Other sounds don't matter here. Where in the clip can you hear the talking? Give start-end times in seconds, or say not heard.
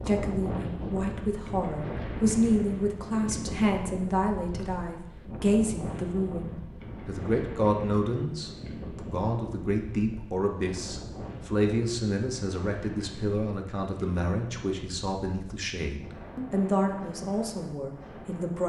0.1-18.6.